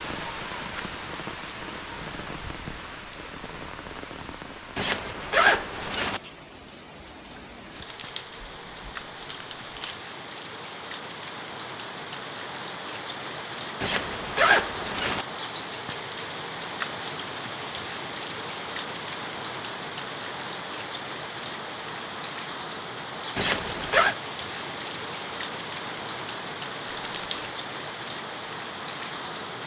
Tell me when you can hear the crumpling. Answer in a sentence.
The crumpling can be heard from 7.7 to 10.0 s and from 26.9 to 27.5 s.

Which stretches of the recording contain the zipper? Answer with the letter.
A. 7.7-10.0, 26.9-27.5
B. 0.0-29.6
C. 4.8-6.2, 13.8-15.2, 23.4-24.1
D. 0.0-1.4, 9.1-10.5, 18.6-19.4
C.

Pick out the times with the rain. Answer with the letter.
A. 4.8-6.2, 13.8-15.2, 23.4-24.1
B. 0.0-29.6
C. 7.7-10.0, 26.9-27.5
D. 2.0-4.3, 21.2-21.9
B.